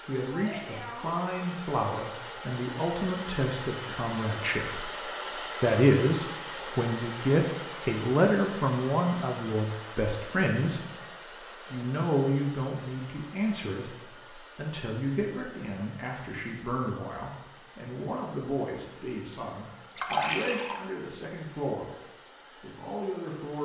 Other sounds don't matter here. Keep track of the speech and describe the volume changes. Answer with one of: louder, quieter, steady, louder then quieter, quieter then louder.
louder then quieter.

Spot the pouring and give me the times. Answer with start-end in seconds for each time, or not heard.
19.9-20.8.